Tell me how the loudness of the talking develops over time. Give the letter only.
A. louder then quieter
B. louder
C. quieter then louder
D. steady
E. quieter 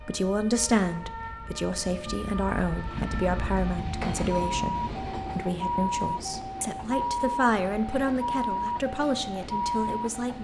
D.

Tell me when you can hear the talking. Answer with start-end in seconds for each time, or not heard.
0.1-10.3.